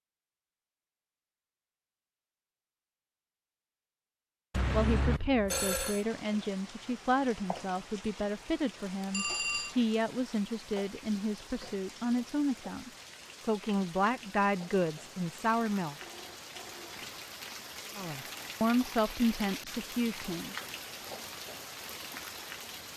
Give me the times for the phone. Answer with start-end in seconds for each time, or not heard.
4.5-6.0, 9.1-9.8, 16.0-17.2.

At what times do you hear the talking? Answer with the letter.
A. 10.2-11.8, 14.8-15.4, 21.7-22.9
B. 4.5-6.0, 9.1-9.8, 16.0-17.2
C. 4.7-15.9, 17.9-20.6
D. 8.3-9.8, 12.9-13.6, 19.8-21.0
C.